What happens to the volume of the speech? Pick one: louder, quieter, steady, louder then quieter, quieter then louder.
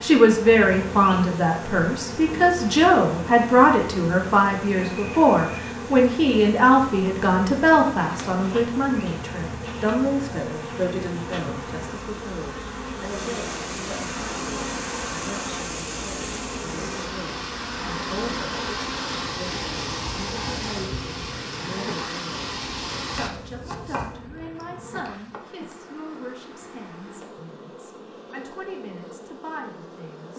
quieter.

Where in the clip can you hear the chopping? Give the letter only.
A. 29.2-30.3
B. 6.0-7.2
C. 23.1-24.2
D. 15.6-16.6
C.